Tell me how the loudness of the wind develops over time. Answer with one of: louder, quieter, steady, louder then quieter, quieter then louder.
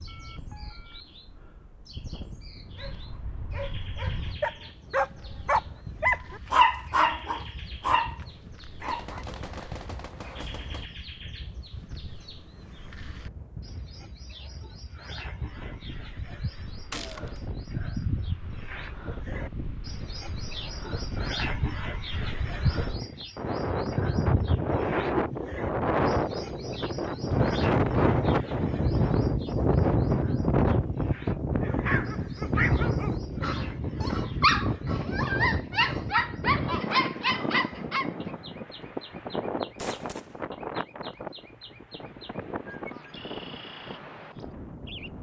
louder then quieter.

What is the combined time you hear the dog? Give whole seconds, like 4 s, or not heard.
13 s.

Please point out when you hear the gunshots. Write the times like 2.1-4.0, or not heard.
8.8-10.9, 16.9-17.4, 39.8-40.5.